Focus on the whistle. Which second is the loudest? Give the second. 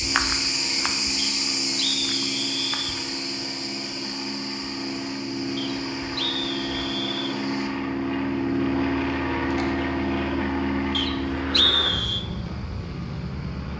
12 s.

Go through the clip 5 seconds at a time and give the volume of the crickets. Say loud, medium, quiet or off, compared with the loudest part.
loud, quiet, quiet.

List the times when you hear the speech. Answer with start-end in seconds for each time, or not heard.
not heard.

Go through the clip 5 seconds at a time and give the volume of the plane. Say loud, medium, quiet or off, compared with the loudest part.
medium, loud, loud.